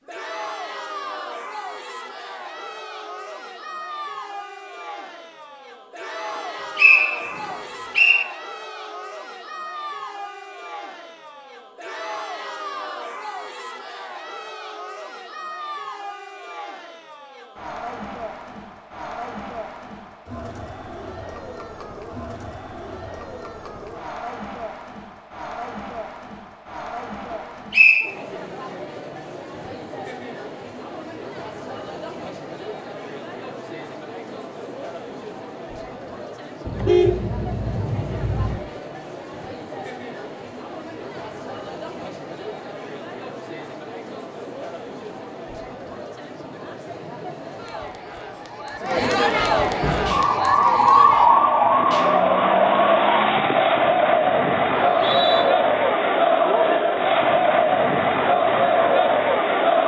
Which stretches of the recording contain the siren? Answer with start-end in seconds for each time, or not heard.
49.8-53.3.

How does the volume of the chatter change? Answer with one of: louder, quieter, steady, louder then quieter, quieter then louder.
louder.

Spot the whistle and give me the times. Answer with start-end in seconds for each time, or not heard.
6.8-8.2, 27.7-28.1, 54.8-55.5.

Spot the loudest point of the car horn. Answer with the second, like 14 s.
37 s.